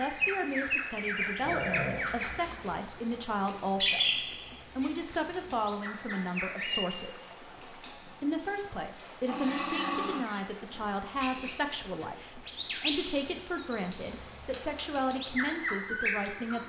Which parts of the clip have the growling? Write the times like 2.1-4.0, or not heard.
1.4-2.8, 9.1-10.9.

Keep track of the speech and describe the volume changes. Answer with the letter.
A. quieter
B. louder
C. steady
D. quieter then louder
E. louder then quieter
C.